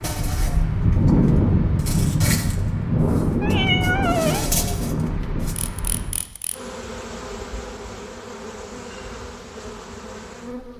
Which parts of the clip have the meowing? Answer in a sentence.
The meowing can be heard from 3.4 to 4.4 s.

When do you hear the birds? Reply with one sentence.
You can't hear the birds here.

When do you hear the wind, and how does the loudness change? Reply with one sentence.
You can hear the wind from 0.0 to 6.2 s, getting quieter.